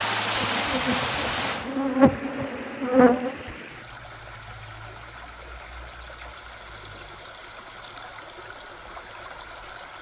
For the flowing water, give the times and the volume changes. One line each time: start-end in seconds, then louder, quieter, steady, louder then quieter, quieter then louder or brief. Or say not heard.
0.0-9.9 quieter.